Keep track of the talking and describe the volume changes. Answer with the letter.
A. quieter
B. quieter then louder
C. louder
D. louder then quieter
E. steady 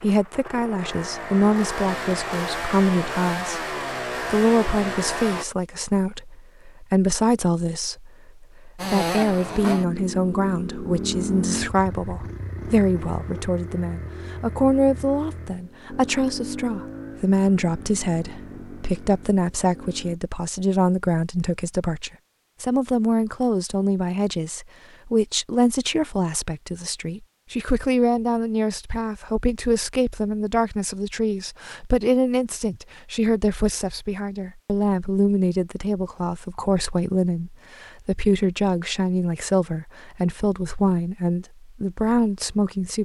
E.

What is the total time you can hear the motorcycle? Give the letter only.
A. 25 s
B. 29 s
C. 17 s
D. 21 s
C.